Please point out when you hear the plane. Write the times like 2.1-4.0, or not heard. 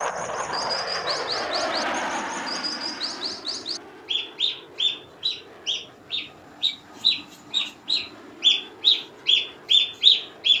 0.0-10.5.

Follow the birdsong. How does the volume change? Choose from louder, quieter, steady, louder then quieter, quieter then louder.
louder.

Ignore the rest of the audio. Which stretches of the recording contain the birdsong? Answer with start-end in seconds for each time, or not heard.
0.0-10.5.